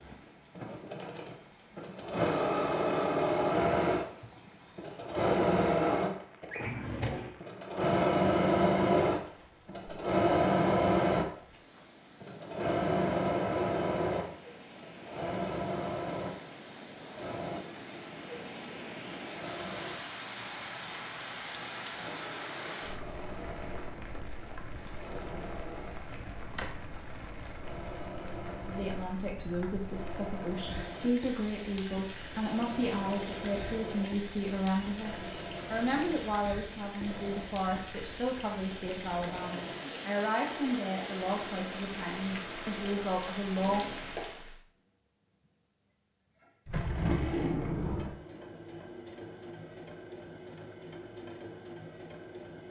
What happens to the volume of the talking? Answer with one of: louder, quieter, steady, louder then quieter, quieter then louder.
steady.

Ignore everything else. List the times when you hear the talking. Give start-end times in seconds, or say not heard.
28.6-43.9.